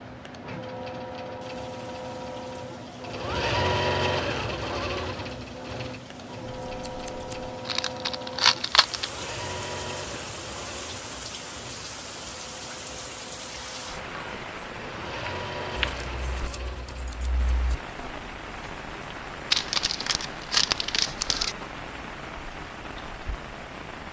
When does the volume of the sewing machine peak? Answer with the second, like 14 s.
4 s.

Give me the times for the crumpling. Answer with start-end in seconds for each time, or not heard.
7.7-9.1, 19.5-21.6.